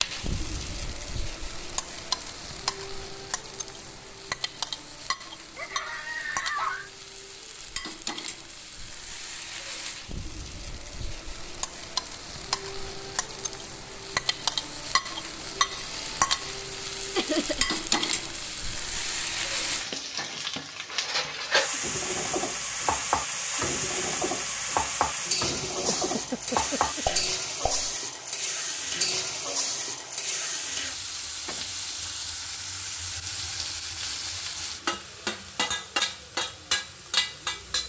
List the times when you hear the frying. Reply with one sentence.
You can hear the frying from 0.0 to 37.8 s.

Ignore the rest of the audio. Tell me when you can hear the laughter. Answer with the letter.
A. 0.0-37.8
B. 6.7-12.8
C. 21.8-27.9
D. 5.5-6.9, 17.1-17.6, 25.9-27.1
D.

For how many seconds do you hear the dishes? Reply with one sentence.
The dishes can be heard for 6 seconds in total.